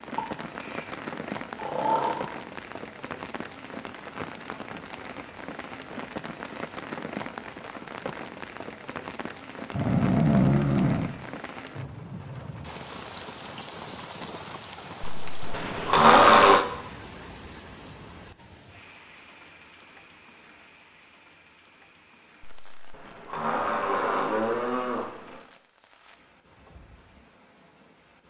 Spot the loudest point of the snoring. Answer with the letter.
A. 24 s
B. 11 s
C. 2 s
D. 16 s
D.